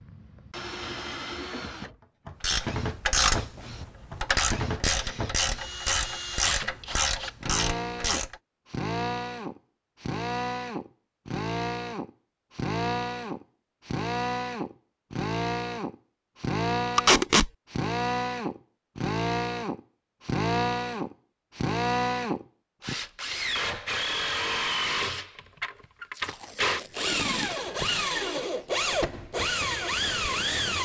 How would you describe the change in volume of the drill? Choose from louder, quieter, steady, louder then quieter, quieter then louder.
louder.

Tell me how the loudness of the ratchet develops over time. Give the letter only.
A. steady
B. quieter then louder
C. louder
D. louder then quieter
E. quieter
A.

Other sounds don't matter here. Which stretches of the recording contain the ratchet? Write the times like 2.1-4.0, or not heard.
2.4-8.3.